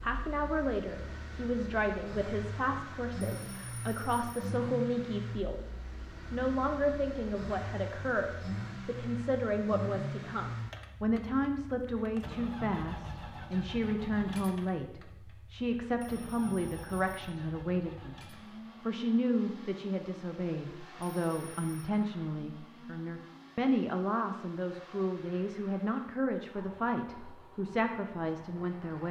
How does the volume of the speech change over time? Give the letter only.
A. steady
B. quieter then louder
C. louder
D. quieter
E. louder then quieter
A.